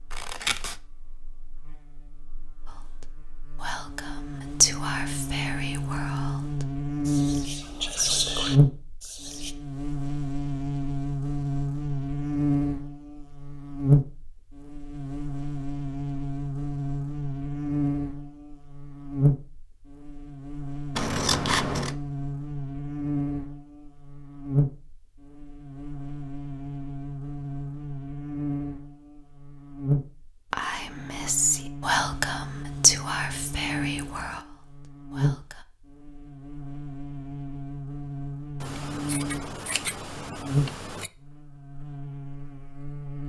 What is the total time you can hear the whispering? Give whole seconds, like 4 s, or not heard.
12 s.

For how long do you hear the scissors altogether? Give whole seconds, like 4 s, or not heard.
4 s.